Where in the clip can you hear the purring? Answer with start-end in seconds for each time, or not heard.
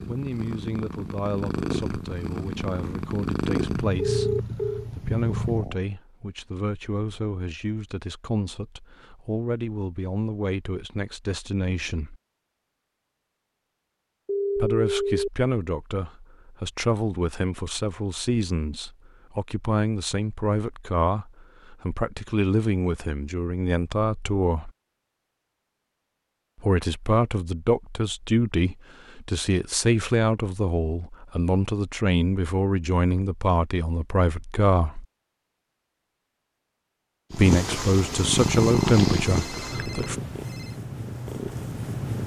0.0-5.8, 37.3-42.2.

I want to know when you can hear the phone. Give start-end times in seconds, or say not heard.
4.0-4.8, 14.2-15.3, 38.5-40.8.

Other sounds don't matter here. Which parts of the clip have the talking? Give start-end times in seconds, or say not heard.
0.1-12.2, 14.6-24.7, 26.6-35.0, 37.3-40.1.